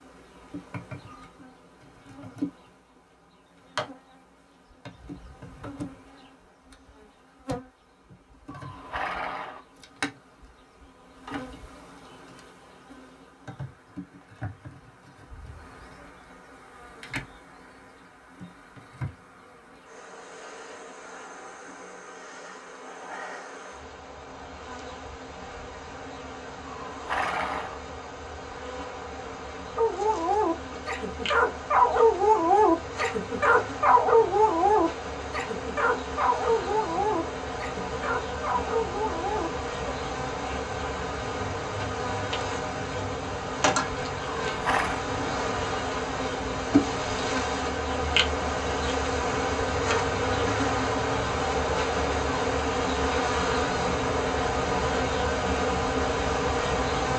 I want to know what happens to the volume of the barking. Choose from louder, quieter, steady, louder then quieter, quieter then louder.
quieter.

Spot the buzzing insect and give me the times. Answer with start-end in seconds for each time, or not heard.
0.0-57.1.